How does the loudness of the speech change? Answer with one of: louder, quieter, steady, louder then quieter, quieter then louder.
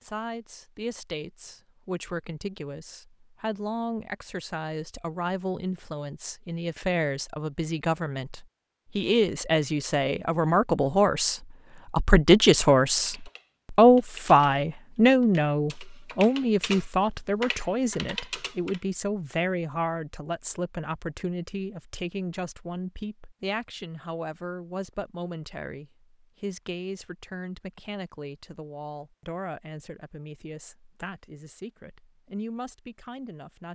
louder then quieter.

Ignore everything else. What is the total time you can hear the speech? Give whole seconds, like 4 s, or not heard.
34 s.